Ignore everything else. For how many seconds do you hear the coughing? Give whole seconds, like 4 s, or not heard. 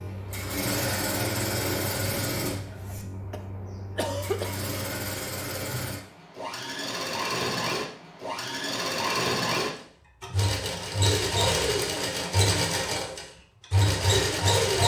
2 s.